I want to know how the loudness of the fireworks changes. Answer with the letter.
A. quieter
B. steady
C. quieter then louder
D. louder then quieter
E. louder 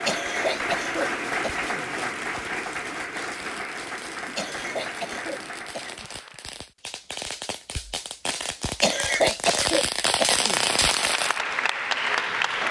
E.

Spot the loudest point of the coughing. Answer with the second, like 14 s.
9 s.